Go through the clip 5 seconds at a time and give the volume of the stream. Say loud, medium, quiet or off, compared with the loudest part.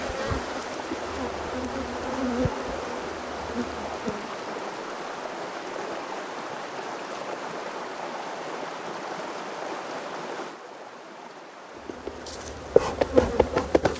loud, loud, medium.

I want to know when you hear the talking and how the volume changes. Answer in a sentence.
You can't hear the talking here.